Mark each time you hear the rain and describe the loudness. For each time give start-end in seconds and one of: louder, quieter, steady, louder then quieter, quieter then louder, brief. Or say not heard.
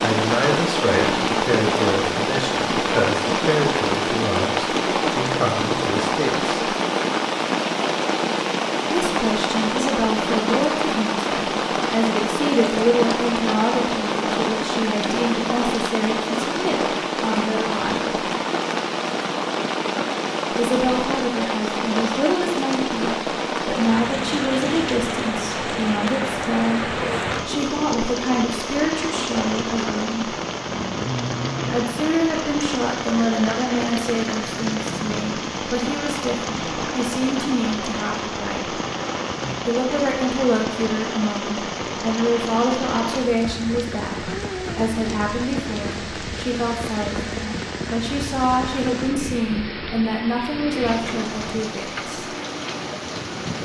0.0-53.5 quieter.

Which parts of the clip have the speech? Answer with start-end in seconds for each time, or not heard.
0.0-6.6, 8.9-18.2, 20.5-30.4, 31.7-38.8, 39.6-52.2.